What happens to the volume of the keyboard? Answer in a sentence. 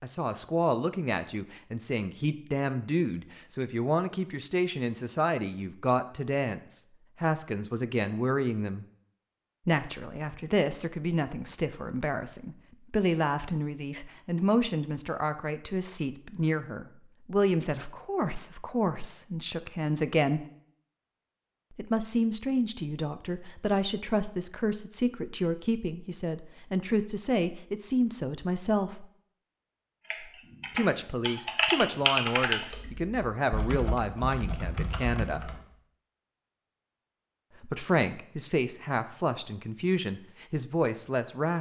The volume of the keyboard goes up, then down.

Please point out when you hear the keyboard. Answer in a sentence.
You can hear the keyboard from 30.1 to 35.6 s.